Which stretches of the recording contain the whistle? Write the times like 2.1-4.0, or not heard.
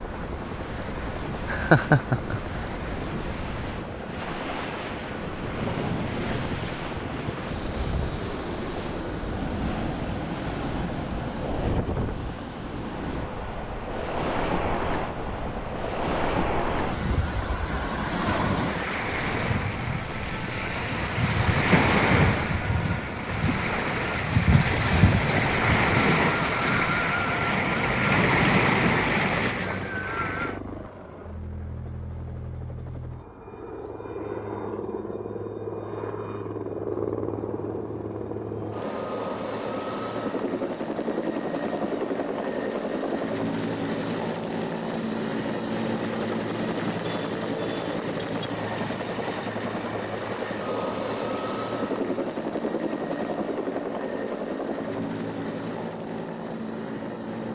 not heard.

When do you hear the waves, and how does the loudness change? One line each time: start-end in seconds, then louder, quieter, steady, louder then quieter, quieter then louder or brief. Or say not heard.
0.0-30.6 louder.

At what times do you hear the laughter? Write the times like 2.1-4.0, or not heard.
1.4-2.6.